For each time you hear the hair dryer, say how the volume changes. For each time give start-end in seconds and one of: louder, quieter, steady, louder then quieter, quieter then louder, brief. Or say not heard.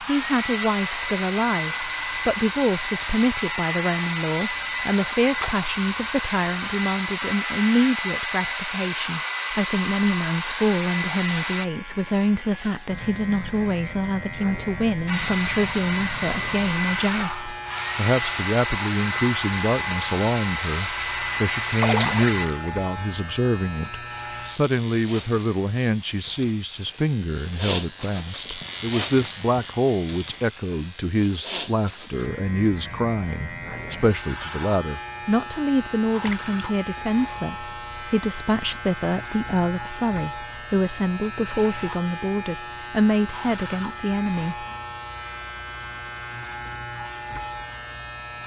0.0-11.7 steady
15.1-22.5 steady.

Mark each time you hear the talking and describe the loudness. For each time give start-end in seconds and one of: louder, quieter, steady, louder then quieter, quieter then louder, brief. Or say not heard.
0.0-44.6 steady.